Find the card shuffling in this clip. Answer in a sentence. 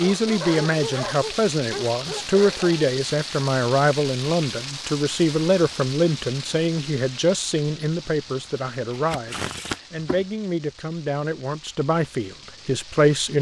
You can hear the card shuffling from 8.7 to 10.2 s.